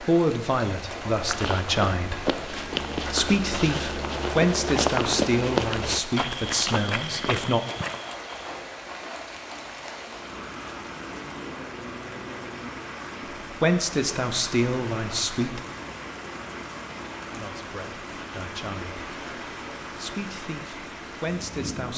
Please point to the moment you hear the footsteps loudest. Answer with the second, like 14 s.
5 s.